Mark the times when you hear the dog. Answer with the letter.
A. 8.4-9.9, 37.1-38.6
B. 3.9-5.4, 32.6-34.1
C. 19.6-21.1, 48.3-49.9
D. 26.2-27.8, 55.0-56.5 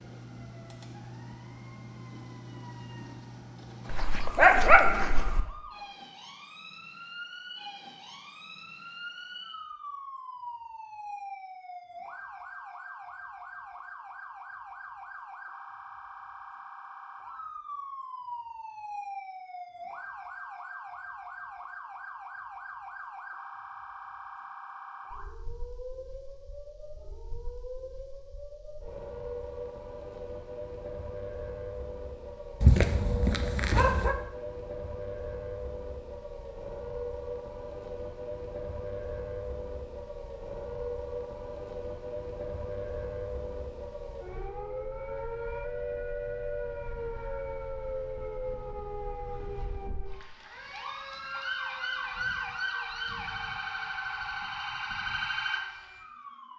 B.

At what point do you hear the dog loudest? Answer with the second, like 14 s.
5 s.